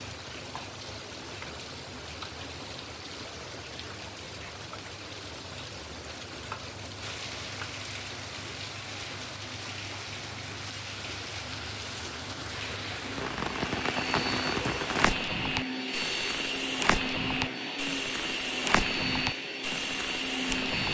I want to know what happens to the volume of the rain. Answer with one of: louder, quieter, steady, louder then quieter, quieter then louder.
louder.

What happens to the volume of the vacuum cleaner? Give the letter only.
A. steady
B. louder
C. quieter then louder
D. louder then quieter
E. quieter
A.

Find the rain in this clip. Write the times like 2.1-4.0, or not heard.
0.0-20.8.